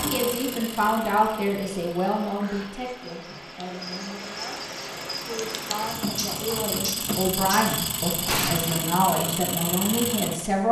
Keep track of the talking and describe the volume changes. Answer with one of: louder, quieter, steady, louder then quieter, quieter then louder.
quieter then louder.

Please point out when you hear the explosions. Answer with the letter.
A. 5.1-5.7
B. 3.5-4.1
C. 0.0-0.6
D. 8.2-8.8
D.